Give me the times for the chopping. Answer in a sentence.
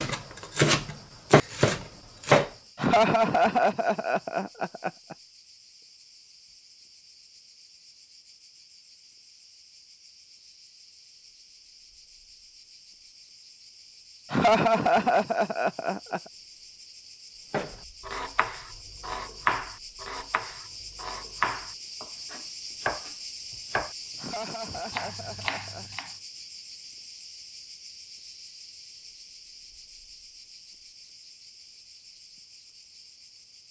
The chopping can be heard from 0.0 to 2.5 s, from 17.5 to 23.9 s and from 24.6 to 26.1 s.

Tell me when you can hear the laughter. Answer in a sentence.
The laughter can be heard from 2.8 to 5.2 s, from 14.3 to 16.2 s and from 24.1 to 25.9 s.